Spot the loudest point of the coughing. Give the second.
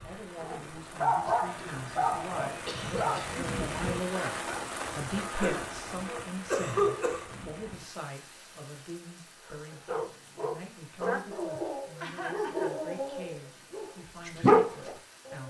7 s.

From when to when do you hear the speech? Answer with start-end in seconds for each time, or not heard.
0.0-15.4.